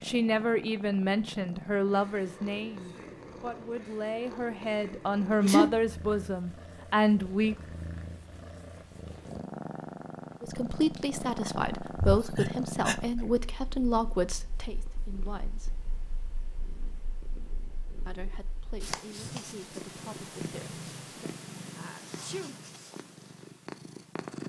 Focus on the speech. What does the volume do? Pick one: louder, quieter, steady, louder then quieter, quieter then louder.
quieter.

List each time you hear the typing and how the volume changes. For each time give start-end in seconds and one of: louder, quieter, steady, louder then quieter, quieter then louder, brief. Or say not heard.
not heard.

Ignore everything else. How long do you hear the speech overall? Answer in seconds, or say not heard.
16 s.